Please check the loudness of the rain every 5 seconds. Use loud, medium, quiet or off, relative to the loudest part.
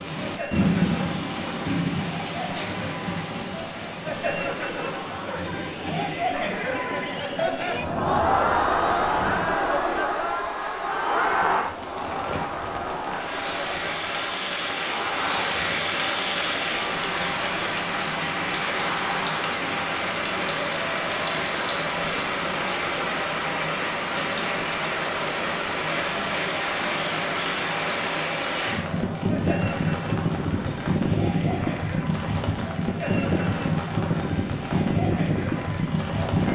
loud, quiet, medium, loud, loud, loud, loud, loud.